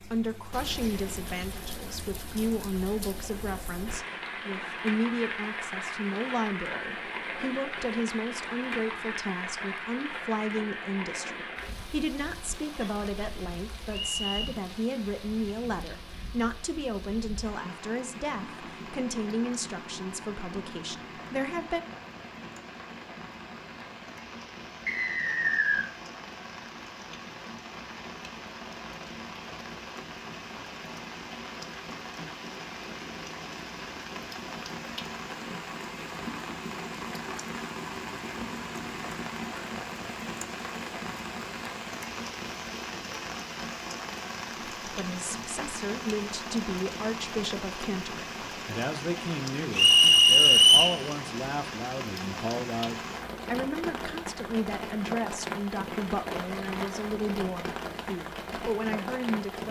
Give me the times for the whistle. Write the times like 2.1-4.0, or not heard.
13.9-14.5, 24.9-25.9, 49.8-51.0.